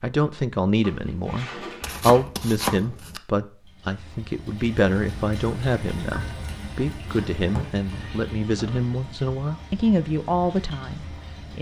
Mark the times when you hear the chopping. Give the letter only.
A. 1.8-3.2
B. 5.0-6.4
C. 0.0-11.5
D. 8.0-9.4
A.